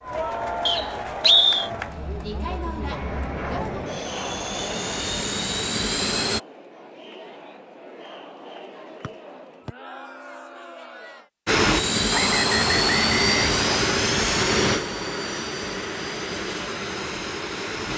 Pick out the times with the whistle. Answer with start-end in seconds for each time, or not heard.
0.7-1.7, 9.0-9.7, 12.1-13.8.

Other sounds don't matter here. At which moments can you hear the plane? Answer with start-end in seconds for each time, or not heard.
2.8-6.4, 11.4-17.9.